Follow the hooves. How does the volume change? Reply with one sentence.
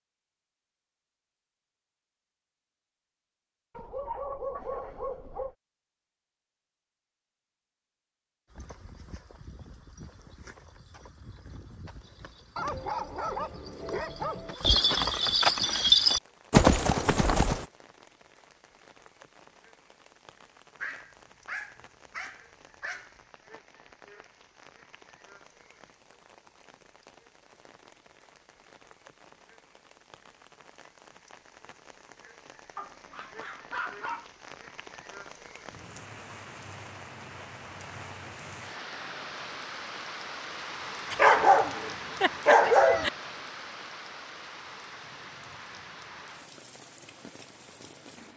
The loudness of the hooves goes up.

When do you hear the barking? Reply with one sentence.
The barking can be heard from 3.8 to 5.5 s, from 12.6 to 14.6 s, from 20.8 to 23.1 s, from 32.8 to 34.2 s and from 41.1 to 43.1 s.